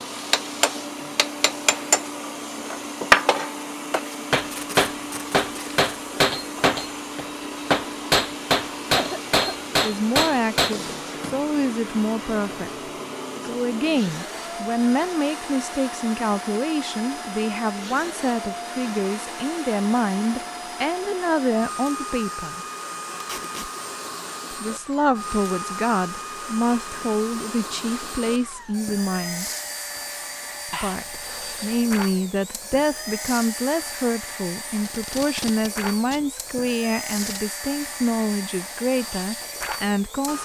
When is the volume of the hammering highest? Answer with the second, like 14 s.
3 s.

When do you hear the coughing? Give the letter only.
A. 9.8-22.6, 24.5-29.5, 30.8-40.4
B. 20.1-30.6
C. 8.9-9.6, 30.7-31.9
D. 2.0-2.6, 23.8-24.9
C.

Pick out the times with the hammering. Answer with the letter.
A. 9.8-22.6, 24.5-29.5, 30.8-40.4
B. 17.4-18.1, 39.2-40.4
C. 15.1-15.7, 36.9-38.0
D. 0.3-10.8
D.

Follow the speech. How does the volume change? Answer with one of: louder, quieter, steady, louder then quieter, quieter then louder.
steady.